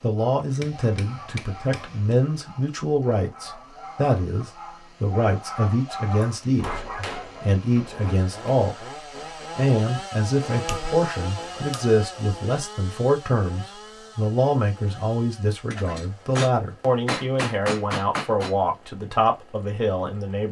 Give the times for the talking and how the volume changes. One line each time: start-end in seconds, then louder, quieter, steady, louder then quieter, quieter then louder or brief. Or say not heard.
0.0-20.4 steady.